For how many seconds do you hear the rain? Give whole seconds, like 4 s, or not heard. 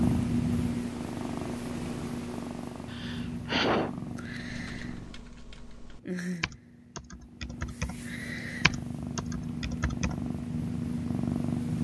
not heard.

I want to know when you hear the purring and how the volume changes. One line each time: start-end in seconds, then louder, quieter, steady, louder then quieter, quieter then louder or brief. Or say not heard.
0.0-11.8 quieter then louder.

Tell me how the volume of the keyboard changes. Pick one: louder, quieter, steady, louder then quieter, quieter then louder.
louder then quieter.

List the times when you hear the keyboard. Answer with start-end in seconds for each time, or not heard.
4.5-10.2.